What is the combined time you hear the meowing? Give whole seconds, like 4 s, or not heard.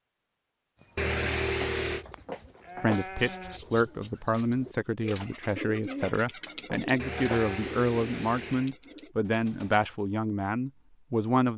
3 s.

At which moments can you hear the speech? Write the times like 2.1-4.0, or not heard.
2.8-11.5.